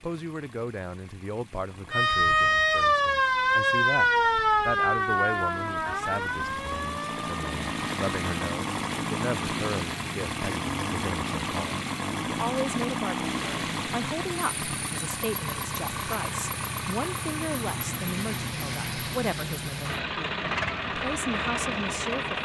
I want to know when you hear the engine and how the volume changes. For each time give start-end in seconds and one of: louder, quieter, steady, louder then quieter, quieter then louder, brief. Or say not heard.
0.0-22.4 louder.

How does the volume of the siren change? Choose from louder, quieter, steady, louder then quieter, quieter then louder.
quieter.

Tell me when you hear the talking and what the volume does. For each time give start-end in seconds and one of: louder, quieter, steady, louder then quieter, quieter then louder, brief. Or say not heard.
0.0-22.4 steady.